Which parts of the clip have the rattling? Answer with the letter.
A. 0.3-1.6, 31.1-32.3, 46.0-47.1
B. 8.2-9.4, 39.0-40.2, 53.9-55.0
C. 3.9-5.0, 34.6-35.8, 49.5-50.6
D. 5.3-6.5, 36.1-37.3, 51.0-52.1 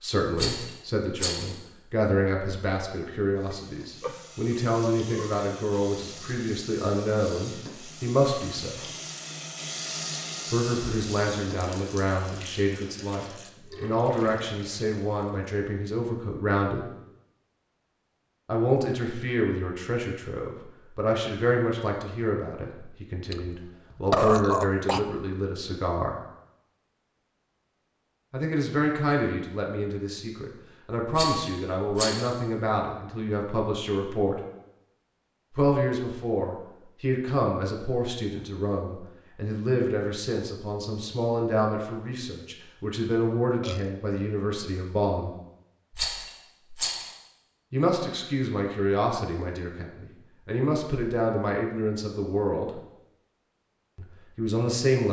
A.